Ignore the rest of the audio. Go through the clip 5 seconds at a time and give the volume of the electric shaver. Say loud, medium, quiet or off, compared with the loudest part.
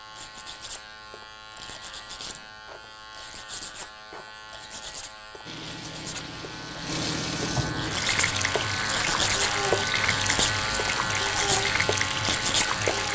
quiet, loud, loud.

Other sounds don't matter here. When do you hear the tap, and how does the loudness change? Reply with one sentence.
You can hear the tap from 5.5 to 13.1 s, getting louder.